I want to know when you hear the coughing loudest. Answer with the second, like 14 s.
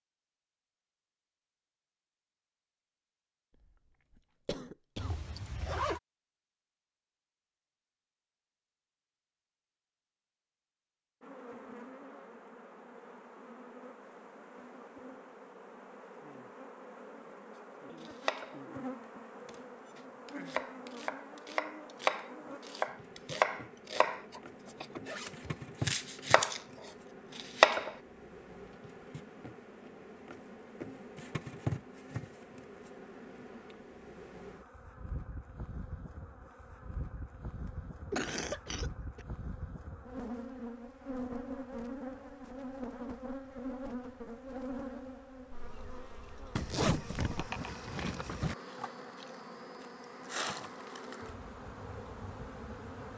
38 s.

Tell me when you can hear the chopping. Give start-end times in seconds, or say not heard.
18.0-18.6, 19.4-27.9.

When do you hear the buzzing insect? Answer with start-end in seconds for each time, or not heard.
11.2-53.1.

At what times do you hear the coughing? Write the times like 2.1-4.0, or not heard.
3.6-5.2, 37.6-39.2.